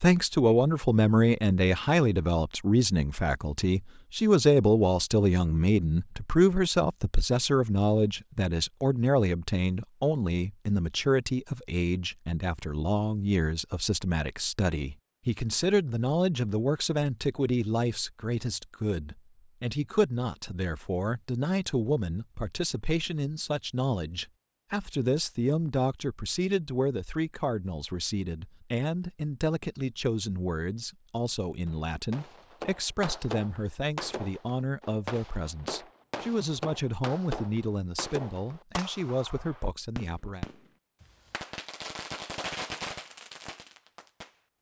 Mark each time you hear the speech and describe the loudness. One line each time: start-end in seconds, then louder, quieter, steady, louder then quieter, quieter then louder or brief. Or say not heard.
0.0-40.5 quieter.